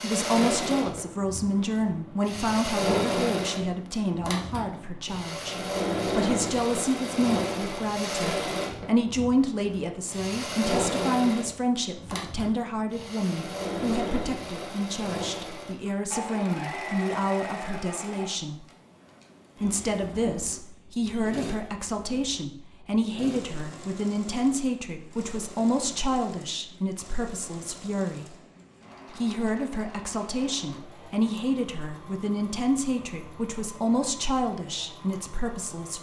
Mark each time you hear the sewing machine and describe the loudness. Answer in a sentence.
The sewing machine can be heard from 0.0 to 35.9 s, getting quieter.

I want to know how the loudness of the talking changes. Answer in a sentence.
The loudness of the talking stays about the same.